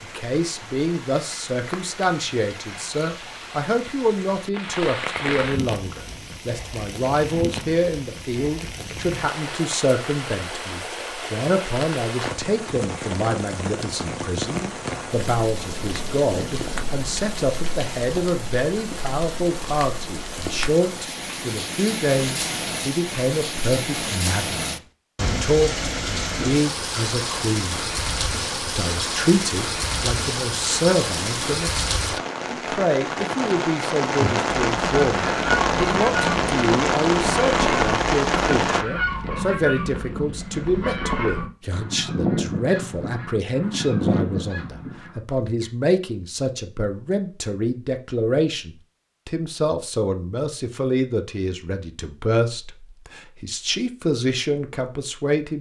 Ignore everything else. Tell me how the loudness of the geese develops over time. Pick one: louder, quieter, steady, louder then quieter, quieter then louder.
steady.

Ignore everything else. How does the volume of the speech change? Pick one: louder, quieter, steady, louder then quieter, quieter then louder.
steady.